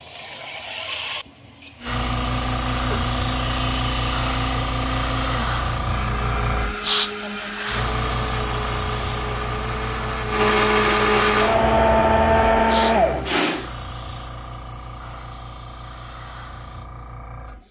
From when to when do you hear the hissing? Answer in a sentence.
You can hear the hissing from 0.0 to 17.6 s.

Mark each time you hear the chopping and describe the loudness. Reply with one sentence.
You can't hear the chopping here.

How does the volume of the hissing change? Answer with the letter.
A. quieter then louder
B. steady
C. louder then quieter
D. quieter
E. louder
D.